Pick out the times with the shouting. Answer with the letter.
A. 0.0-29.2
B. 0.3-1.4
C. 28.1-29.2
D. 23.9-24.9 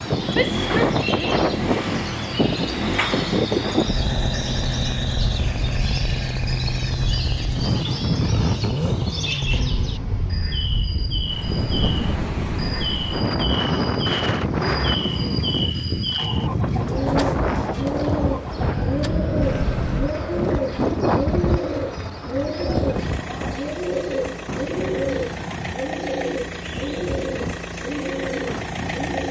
B.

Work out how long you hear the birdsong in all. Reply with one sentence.
You can hear the birdsong for 29 seconds altogether.